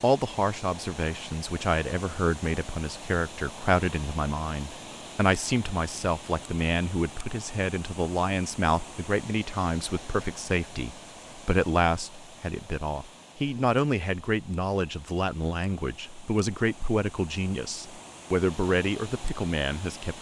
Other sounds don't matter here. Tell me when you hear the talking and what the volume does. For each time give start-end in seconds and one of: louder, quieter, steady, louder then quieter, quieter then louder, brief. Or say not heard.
0.0-20.1 steady.